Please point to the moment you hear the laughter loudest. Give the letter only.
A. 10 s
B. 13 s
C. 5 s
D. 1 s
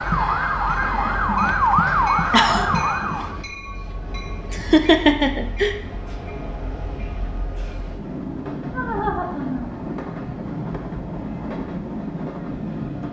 C.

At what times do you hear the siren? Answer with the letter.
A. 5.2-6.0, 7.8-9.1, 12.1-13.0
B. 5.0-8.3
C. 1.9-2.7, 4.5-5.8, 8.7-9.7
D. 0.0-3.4
D.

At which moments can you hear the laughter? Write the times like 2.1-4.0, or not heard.
1.9-2.7, 4.5-5.8, 8.7-9.7.